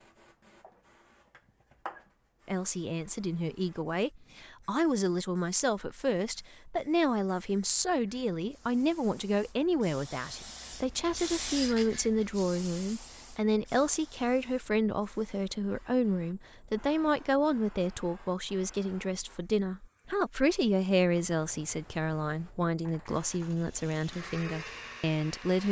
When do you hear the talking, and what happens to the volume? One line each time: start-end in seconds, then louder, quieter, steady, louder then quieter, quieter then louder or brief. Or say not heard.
2.5-25.6 steady.